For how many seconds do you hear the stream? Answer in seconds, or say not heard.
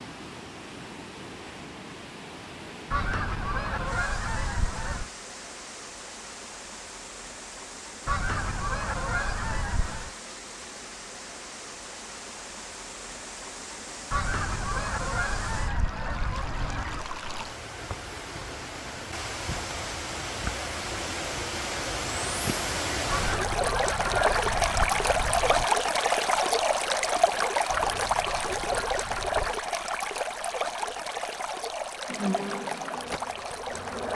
34 s.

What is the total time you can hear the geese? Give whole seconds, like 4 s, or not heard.
12 s.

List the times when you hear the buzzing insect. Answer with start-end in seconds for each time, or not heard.
32.0-34.0.